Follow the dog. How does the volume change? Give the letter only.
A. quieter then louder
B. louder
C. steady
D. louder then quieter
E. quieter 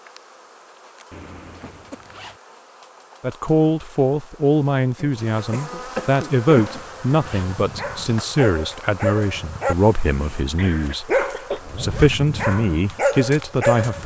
B.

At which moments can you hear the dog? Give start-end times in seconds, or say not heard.
6.5-14.0.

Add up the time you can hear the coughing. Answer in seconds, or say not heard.
4 s.